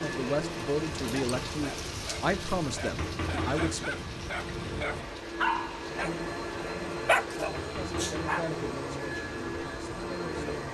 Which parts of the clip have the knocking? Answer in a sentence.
You can hear the knocking from 3.0 to 3.9 s and from 7.5 to 8.4 s.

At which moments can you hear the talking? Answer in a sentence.
The talking can be heard from 0.0 to 4.0 s and from 7.7 to 10.6 s.